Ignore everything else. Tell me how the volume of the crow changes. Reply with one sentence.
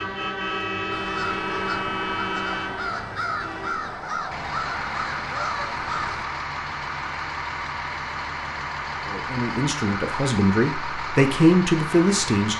The loudness of the crow stays about the same.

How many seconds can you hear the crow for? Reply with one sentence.
You can hear the crow for 5 seconds altogether.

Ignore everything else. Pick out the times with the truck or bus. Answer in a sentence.
The truck or bus can be heard from 0.0 to 12.5 s.